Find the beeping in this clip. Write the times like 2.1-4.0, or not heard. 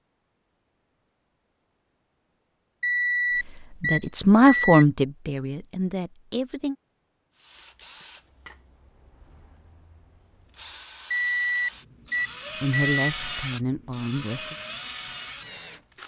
2.8-4.8, 11.1-13.1.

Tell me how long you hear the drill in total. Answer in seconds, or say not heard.
9 s.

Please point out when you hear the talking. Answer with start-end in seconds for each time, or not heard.
3.4-6.8, 12.6-14.6.